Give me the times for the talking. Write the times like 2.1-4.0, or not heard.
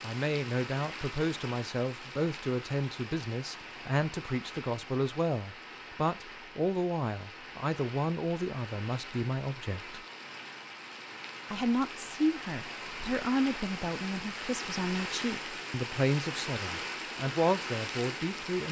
0.0-10.0, 11.4-18.6.